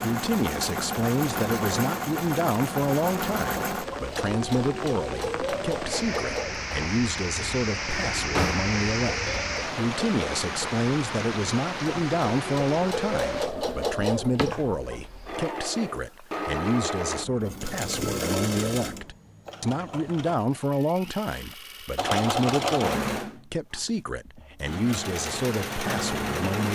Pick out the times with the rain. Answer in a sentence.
You can hear the rain from 0.0 to 13.5 s.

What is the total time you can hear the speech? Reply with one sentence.
The speech can be heard for 27 seconds in total.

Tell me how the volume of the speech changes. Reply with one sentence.
The loudness of the speech stays about the same.